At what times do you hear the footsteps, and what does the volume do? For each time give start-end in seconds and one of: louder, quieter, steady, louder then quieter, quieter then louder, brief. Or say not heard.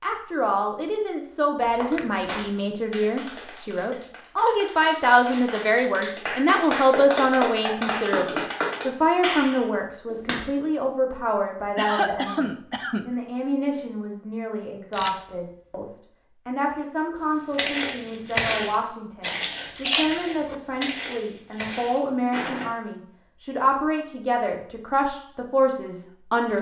17.2-22.6 quieter.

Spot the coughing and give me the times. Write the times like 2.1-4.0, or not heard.
11.8-13.1.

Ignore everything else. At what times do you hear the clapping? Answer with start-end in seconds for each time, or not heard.
1.8-10.5.